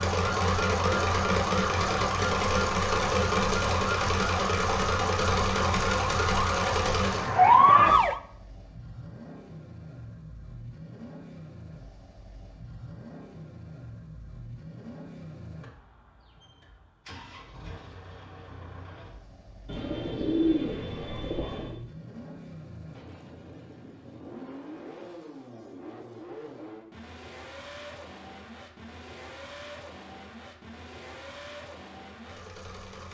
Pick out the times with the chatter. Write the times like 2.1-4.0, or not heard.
not heard.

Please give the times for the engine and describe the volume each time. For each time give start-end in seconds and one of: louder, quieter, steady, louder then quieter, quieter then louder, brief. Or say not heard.
0.0-33.1 quieter.